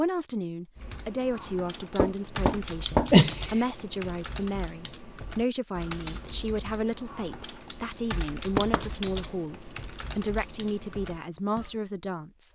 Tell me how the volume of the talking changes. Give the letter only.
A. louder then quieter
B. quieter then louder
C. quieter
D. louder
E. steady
E.